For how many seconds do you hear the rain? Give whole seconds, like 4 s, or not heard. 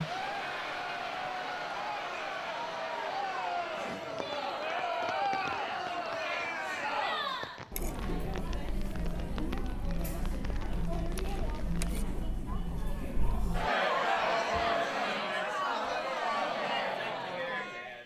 12 s.